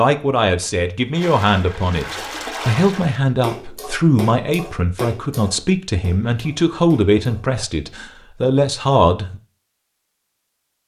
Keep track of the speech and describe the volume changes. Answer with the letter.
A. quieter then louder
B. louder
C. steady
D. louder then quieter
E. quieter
C.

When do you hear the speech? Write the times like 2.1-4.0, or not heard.
0.0-9.4.